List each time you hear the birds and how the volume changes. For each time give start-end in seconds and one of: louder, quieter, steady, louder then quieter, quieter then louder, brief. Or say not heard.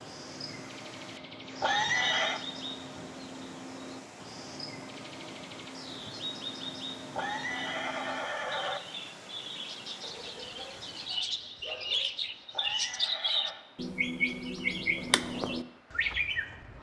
0.0-16.7 louder.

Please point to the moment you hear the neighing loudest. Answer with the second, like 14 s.
2 s.